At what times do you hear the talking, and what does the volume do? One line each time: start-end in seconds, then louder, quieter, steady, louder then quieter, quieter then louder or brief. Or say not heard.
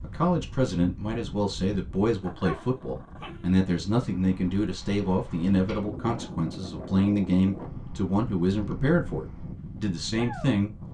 0.0-10.7 steady.